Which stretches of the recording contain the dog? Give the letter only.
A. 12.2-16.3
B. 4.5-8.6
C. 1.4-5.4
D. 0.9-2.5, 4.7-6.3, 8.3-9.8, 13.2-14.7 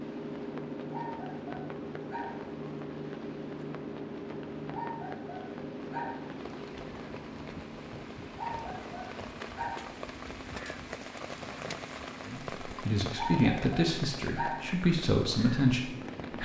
D.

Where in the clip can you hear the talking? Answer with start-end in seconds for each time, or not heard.
12.2-16.3.